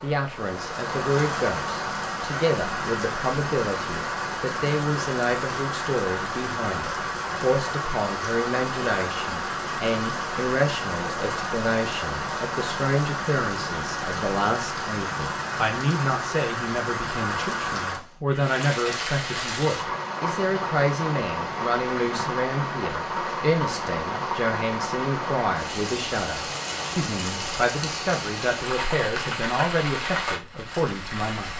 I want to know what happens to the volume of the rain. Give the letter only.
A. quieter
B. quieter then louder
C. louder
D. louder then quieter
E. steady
E.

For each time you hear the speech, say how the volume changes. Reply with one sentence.
The speech can be heard from 0.0 to 31.5 s, at a steady volume.